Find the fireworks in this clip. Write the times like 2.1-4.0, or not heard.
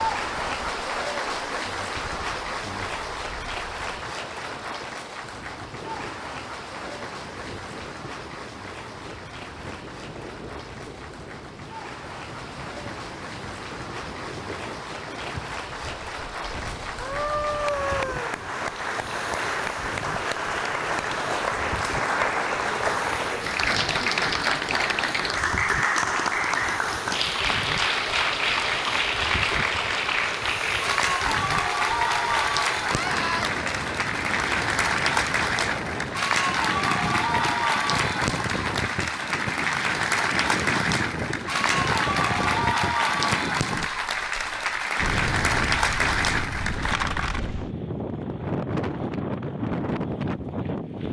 not heard.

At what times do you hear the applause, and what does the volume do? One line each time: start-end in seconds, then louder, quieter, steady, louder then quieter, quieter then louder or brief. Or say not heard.
0.0-47.5 louder.